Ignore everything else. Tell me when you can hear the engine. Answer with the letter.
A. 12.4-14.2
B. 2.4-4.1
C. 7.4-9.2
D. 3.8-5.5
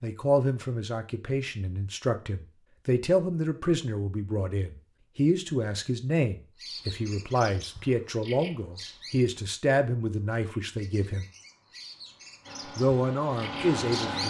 A.